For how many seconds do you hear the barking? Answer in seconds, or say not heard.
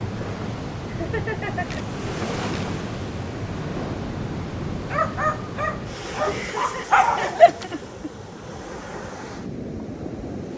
3 s.